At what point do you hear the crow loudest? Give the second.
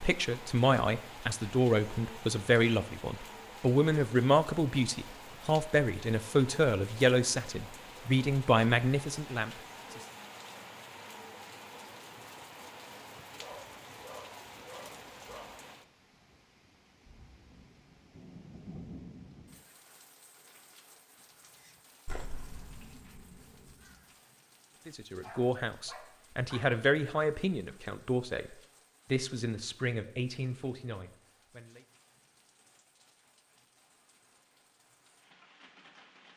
22 s.